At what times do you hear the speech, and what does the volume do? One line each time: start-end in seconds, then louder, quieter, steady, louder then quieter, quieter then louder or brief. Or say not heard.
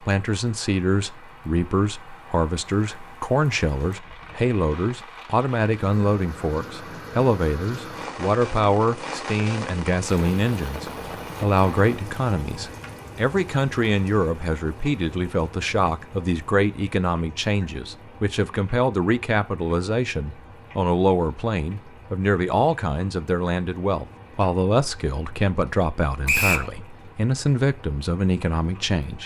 0.0-29.2 steady.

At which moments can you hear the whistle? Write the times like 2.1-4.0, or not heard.
26.2-26.7.